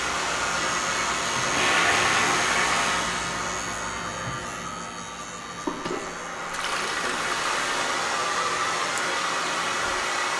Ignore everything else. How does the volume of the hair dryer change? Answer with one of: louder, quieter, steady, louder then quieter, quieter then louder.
quieter then louder.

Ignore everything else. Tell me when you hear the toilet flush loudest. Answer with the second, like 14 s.
2 s.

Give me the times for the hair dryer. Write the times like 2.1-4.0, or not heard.
0.0-10.3.